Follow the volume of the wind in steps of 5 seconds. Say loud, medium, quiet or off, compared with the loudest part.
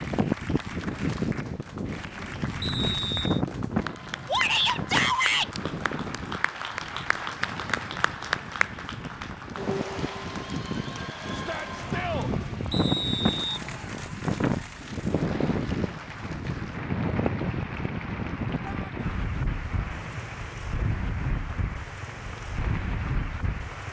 loud, medium, loud, loud, medium.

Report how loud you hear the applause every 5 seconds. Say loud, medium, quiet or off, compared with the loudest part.
medium, loud, medium, medium, medium.